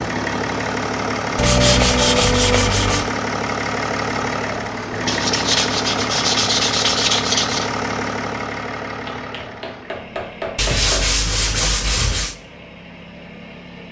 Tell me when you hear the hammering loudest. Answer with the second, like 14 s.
11 s.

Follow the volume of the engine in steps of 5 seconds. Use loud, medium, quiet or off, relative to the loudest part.
loud, loud, quiet.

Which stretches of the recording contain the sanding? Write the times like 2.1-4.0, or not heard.
1.4-3.1, 5.0-7.7, 10.6-12.3.